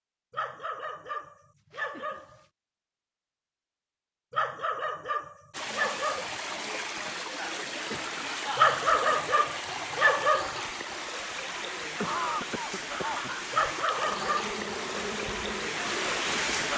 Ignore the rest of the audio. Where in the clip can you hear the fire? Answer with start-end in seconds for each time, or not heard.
not heard.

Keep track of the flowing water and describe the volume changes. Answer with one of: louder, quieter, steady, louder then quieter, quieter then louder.
steady.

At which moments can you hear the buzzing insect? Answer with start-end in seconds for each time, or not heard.
14.0-16.7.